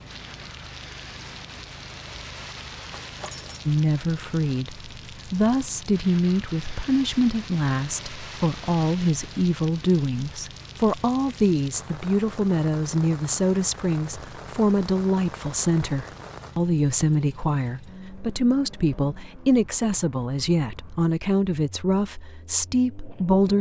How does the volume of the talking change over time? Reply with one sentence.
The loudness of the talking stays about the same.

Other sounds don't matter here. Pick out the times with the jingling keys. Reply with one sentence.
You can hear the jingling keys from 2.9 to 3.6 s.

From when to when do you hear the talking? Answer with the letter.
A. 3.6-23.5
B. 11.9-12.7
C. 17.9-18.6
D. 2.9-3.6
A.